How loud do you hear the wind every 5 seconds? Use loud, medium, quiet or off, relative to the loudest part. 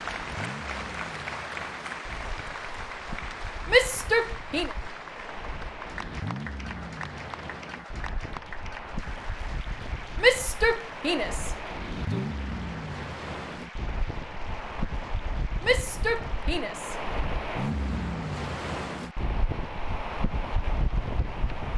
medium, medium, loud, loud, loud.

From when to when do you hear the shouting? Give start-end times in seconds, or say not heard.
3.6-4.8, 10.2-12.2, 15.6-16.9.